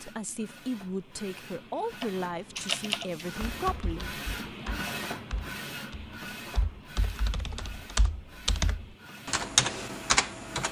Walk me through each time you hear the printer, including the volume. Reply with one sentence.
You can hear the printer from 0.0 to 10.6 s, getting louder then quieter.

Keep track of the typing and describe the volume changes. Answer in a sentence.
The volume of the typing goes down, then up.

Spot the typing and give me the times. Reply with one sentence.
You can hear the typing from 2.0 to 10.6 s.